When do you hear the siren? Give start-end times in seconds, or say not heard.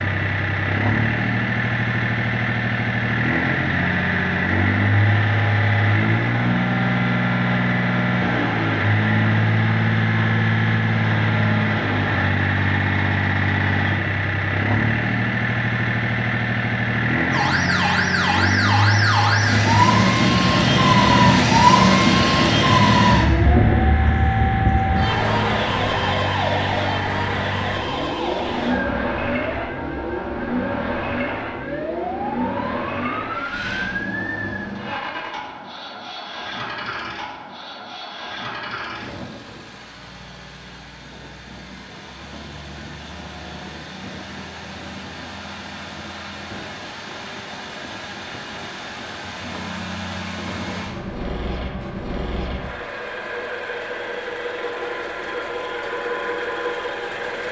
17.3-34.4.